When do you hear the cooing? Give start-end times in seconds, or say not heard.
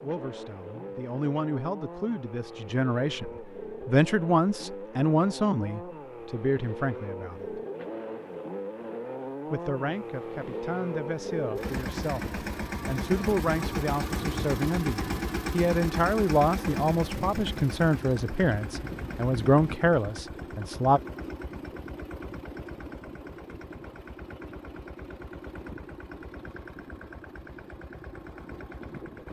not heard.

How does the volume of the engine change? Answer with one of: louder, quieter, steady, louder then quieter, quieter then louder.
louder then quieter.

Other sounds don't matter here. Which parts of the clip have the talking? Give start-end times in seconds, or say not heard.
0.0-7.6, 9.5-21.0.